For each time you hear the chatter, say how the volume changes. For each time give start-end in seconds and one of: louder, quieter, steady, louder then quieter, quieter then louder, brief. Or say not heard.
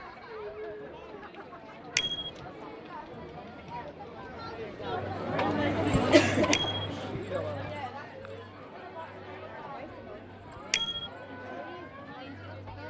0.0-12.8 louder then quieter.